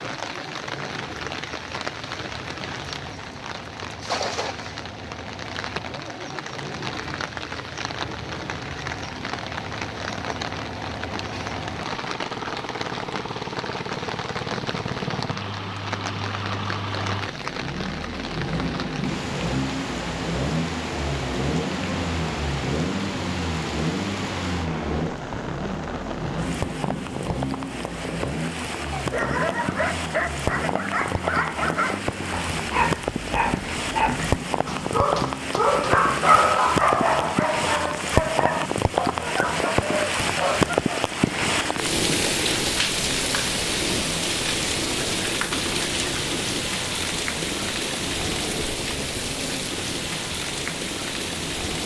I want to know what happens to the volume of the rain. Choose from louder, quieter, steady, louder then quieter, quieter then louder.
louder.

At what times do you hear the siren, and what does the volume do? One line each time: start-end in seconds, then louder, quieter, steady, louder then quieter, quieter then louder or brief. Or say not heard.
not heard.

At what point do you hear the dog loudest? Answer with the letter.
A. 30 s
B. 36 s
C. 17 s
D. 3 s
B.